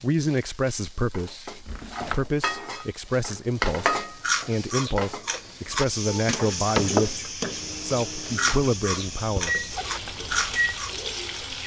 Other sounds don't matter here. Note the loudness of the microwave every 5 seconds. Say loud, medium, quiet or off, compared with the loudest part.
off, loud, loud.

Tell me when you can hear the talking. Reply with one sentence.
You can hear the talking from 0.0 to 9.7 s.